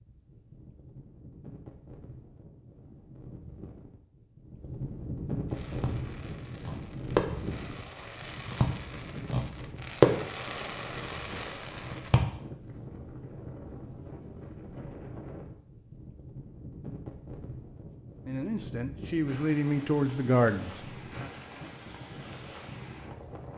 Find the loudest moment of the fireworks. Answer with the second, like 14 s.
10 s.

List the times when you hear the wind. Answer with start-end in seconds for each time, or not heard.
0.0-23.5.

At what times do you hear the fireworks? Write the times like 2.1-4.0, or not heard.
5.5-12.3.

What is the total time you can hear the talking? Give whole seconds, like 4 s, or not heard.
3 s.